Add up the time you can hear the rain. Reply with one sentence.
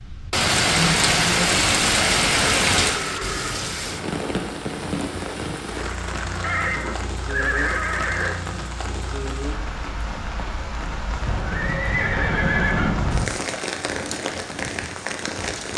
The rain can be heard for 16 seconds in total.